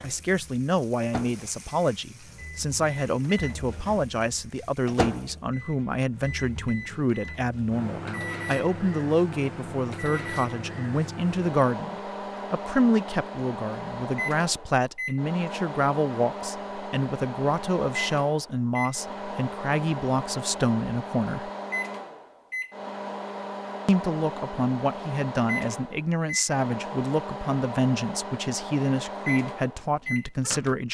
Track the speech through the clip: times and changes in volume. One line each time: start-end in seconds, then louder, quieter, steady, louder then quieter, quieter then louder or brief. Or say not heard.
0.0-21.5 steady
23.9-30.8 steady.